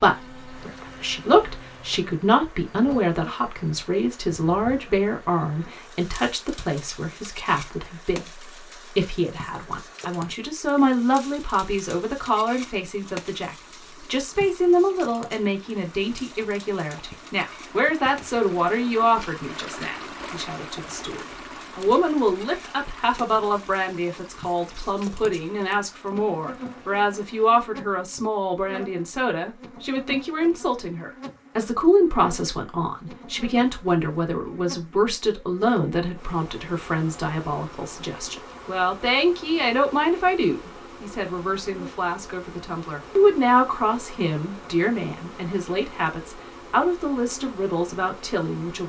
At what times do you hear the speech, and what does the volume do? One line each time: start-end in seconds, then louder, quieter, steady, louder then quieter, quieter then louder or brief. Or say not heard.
0.0-48.8 steady.